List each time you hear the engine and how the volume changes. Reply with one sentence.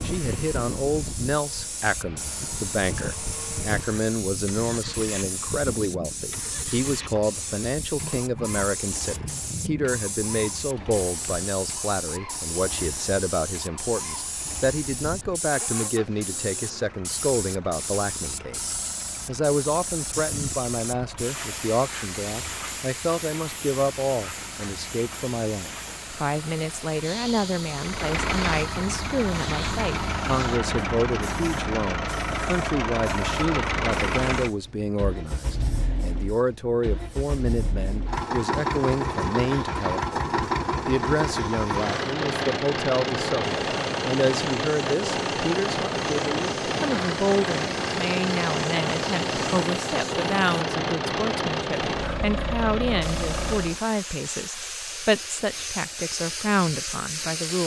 The engine can be heard from 0.0 to 53.8 s, getting louder.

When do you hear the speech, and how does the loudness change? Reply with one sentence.
The speech can be heard from 0.0 to 57.6 s, at a steady volume.